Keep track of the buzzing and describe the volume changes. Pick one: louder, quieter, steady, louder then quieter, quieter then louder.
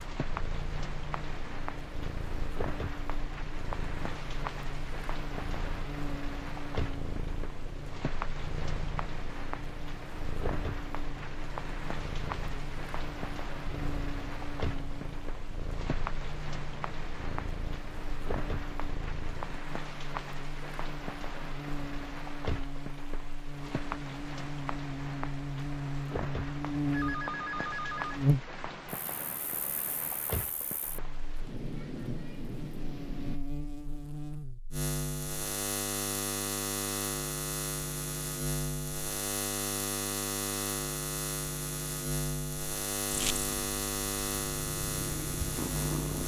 louder.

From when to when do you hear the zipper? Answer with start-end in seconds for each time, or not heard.
not heard.